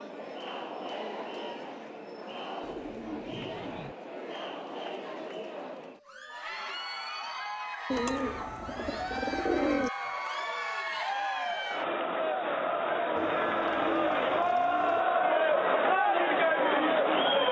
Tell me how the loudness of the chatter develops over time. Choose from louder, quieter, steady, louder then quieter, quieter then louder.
louder.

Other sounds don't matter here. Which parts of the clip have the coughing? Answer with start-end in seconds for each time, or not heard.
not heard.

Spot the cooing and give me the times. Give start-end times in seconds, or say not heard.
2.6-4.0, 7.9-9.9, 13.2-15.1.